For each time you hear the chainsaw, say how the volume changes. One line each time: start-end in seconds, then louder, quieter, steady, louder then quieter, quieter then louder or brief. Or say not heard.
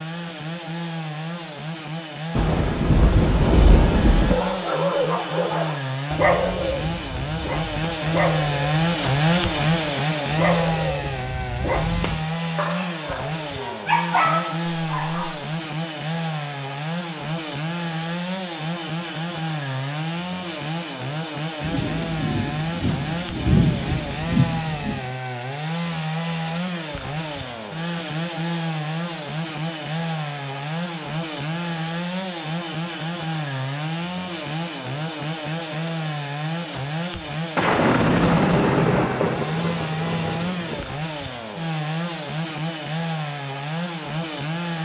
0.0-44.7 steady.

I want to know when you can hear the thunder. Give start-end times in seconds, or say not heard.
2.4-4.3, 21.6-25.0, 37.5-40.9.